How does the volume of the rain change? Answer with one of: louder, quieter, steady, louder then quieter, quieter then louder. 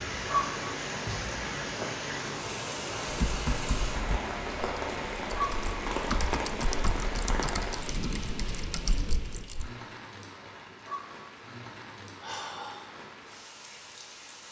quieter.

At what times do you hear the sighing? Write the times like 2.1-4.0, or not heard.
12.2-12.9.